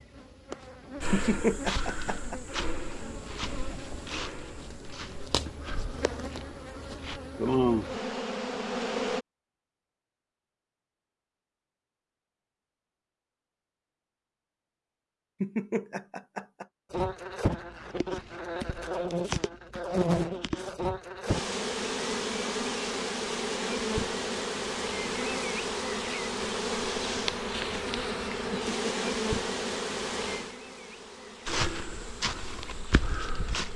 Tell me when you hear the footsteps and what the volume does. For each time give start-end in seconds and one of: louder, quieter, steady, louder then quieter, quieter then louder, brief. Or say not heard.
1.0-7.2 quieter
31.4-33.7 brief.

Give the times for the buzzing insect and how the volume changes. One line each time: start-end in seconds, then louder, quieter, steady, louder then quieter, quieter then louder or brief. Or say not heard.
0.0-9.2 louder
16.9-33.7 quieter.